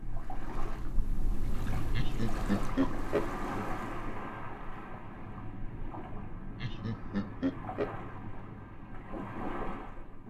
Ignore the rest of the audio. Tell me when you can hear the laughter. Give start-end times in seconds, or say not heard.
1.9-3.3, 6.5-8.0.